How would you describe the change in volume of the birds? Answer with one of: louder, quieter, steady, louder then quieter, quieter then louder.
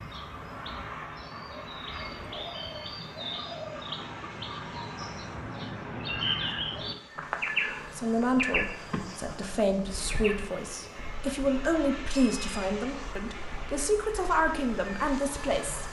louder then quieter.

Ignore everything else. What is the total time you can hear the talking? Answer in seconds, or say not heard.
8 s.